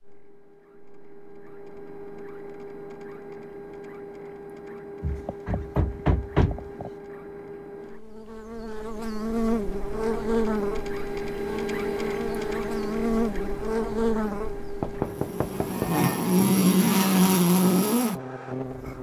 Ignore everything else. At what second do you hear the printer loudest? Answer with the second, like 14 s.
12 s.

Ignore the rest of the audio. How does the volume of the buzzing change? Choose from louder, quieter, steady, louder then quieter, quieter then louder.
louder.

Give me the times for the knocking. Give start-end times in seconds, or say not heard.
5.0-6.9, 14.8-15.9.